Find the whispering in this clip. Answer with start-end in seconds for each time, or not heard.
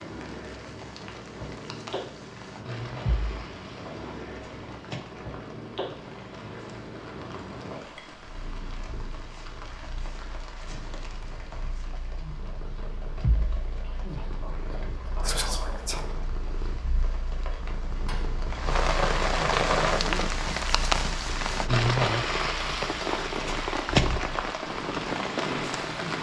13.8-16.1.